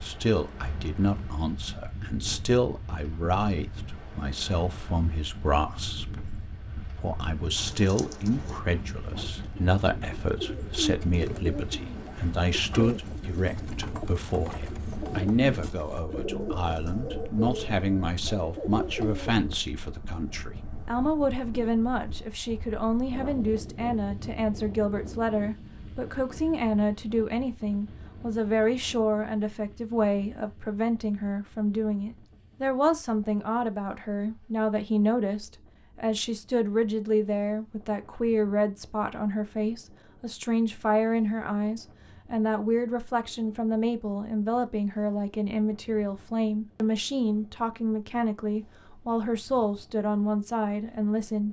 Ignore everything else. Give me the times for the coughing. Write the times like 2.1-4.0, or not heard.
not heard.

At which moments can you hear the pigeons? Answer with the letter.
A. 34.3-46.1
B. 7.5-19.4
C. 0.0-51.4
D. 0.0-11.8
B.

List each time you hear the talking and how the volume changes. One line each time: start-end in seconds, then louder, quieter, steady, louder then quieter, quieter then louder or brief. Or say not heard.
0.0-51.4 steady.